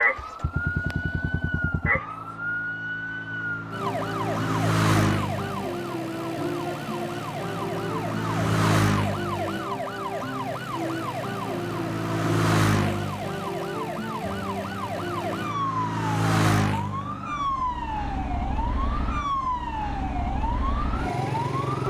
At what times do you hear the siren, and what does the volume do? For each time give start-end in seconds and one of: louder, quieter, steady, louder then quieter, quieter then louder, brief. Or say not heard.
0.0-21.8 steady.